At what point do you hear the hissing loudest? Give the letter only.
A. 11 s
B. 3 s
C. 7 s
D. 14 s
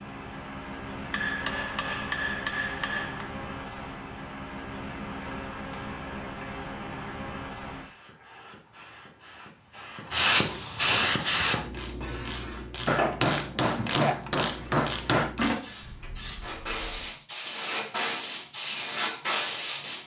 A.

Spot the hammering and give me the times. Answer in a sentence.
You can hear the hammering from 1.1 to 3.2 s and from 12.8 to 15.3 s.